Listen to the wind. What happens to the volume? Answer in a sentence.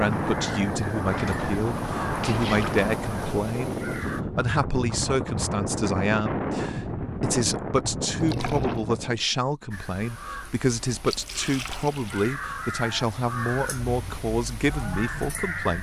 The loudness of the wind stays about the same.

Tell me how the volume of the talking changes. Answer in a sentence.
The volume of the talking stays about the same.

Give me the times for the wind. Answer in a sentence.
You can hear the wind from 0.0 to 9.2 s.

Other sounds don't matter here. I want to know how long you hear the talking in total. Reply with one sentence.
You can hear the talking for 16 seconds altogether.